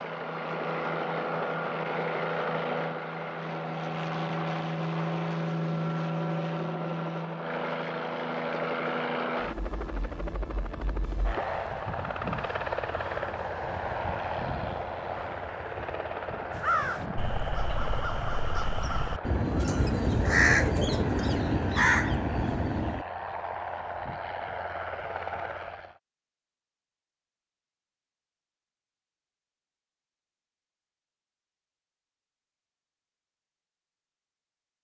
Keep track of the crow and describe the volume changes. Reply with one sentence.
The volume of the crow goes up.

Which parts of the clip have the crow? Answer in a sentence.
The crow can be heard from 16.5 to 23.1 s.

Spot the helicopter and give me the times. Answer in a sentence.
The helicopter can be heard from 0.0 to 26.0 s.